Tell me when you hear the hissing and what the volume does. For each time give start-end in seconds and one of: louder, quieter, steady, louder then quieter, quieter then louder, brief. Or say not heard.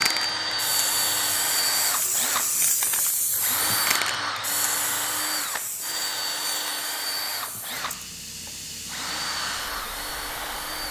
0.0-10.8 quieter.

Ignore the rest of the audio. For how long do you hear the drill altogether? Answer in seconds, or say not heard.
11 s.